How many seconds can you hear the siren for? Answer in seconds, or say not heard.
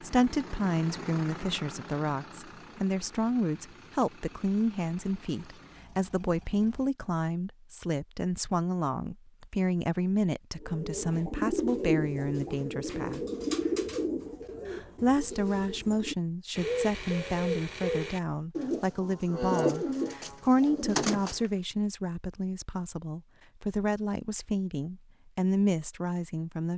not heard.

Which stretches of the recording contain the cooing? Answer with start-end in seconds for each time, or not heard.
10.6-21.5.